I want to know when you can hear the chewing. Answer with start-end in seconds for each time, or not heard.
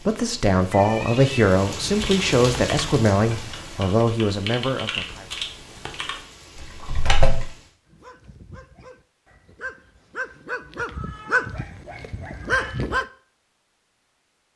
not heard.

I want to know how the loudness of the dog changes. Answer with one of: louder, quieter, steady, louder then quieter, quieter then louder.
louder.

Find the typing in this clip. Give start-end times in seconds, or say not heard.
1.9-7.5.